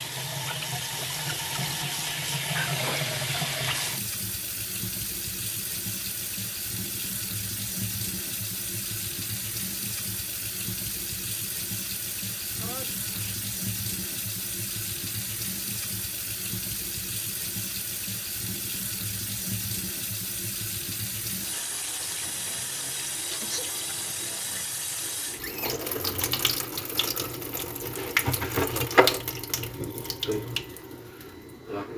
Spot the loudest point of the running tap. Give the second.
29 s.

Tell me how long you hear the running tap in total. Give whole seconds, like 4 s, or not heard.
32 s.